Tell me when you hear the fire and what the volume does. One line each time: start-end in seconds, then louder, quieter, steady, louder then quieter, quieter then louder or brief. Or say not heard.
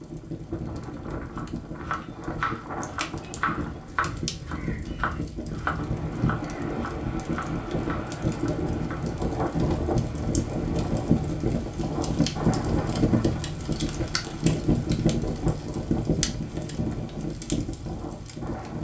0.0-18.7 louder.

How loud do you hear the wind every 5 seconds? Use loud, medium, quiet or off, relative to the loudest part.
medium, loud, loud, medium.